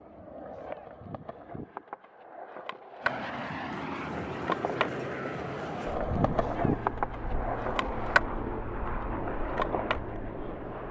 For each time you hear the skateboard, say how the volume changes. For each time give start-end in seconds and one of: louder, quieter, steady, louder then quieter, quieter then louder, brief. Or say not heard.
0.0-10.8 louder then quieter.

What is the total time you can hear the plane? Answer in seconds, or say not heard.
8 s.